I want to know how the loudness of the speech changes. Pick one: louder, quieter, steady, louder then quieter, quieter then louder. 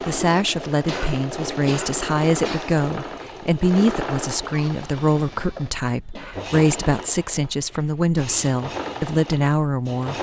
steady.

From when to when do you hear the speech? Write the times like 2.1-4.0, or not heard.
0.1-10.1.